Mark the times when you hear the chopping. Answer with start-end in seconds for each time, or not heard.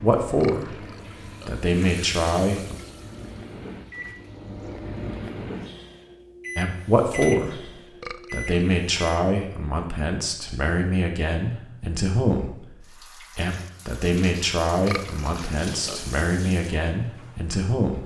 not heard.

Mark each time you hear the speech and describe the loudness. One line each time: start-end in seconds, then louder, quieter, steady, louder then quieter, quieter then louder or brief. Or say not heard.
0.0-0.8 brief
1.4-2.8 brief
6.5-7.6 brief
8.3-18.0 steady.